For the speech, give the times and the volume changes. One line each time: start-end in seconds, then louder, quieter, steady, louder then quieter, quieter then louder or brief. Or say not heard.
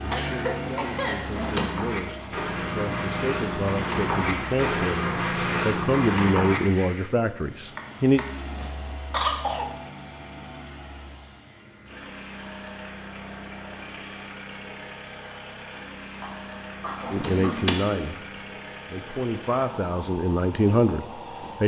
0.0-8.2 louder
17.1-21.6 quieter then louder.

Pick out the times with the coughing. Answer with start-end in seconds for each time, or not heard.
0.0-1.3, 9.1-9.8, 16.2-17.7.